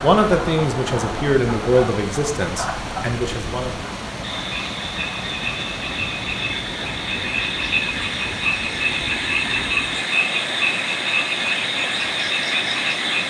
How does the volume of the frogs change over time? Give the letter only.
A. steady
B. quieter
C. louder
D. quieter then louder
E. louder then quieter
C.